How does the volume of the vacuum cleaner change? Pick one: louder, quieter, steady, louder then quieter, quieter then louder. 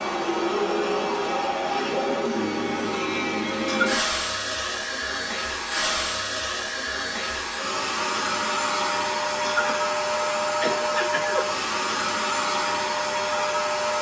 steady.